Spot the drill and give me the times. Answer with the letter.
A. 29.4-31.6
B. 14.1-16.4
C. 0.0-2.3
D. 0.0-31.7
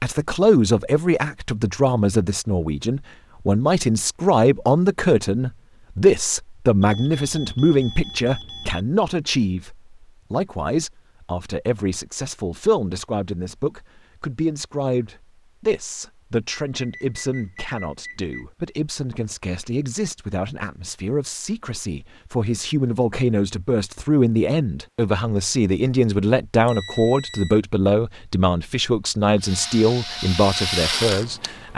A.